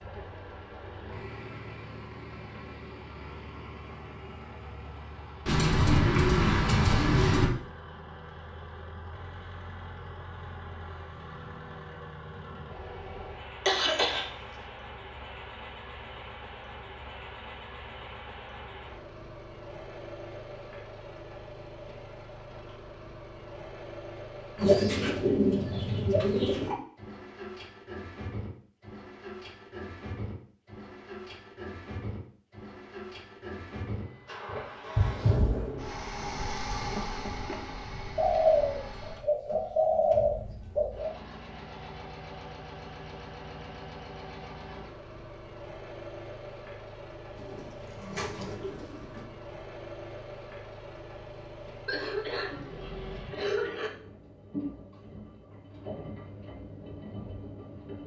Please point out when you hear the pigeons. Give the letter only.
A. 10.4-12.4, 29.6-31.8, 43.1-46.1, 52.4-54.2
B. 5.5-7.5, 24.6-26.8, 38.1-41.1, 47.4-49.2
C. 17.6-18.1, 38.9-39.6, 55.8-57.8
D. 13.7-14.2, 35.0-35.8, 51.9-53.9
B.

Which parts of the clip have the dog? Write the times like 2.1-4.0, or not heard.
not heard.